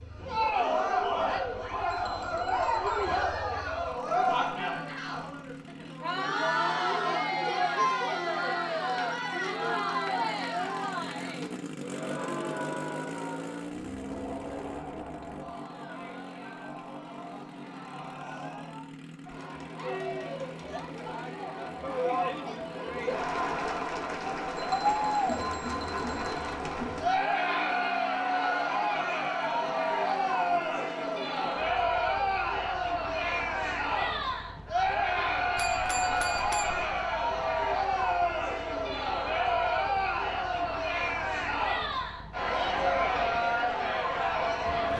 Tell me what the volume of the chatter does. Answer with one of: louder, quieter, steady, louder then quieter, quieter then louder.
quieter then louder.